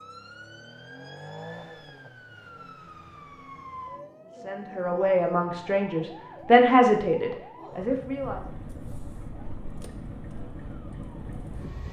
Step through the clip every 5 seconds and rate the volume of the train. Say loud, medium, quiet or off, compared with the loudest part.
off, loud, loud.